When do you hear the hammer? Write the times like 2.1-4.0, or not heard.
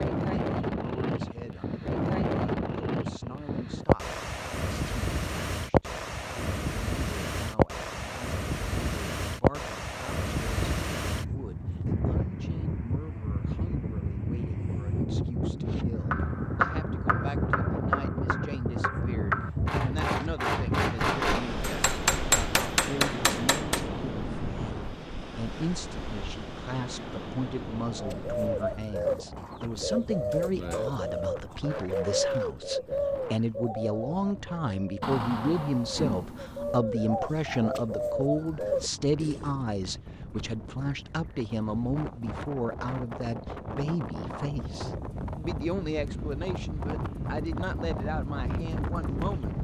16.1-23.9.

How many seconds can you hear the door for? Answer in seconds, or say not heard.
2 s.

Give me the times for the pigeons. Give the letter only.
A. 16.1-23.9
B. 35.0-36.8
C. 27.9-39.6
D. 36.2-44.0
C.